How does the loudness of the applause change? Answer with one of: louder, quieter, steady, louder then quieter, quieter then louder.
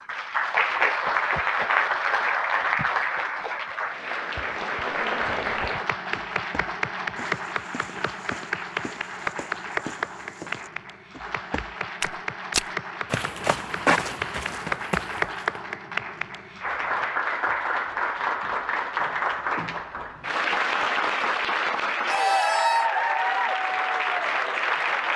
quieter then louder.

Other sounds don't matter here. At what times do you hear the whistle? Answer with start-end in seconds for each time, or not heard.
not heard.